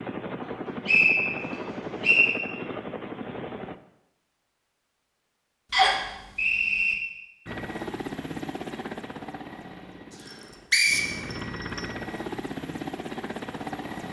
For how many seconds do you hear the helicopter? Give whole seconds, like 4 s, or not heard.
10 s.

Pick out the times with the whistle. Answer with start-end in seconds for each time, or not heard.
0.5-2.4, 5.7-7.0, 10.2-11.8.